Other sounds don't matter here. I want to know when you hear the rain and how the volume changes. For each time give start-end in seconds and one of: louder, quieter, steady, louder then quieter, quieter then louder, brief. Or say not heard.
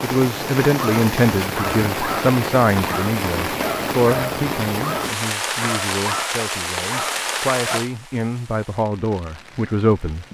0.0-10.2 quieter.